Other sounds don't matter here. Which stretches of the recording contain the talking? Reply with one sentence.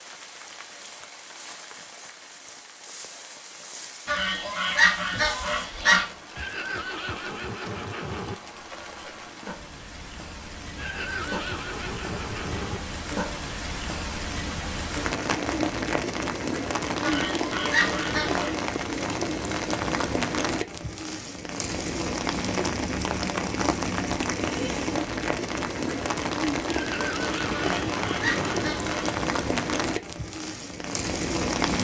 You can't hear the talking here.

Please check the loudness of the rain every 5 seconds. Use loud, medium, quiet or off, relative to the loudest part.
quiet, quiet, medium, loud, loud, loud, loud.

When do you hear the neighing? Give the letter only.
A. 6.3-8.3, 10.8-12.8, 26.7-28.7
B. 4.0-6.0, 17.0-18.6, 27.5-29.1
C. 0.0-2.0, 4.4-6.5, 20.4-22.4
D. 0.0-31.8
A.